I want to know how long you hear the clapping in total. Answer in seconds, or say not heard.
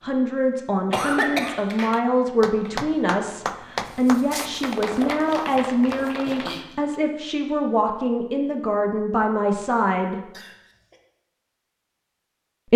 5 s.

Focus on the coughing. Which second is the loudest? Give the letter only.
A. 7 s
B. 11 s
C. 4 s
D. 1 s
D.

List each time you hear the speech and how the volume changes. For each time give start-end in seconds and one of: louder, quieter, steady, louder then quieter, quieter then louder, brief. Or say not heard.
0.0-10.2 steady.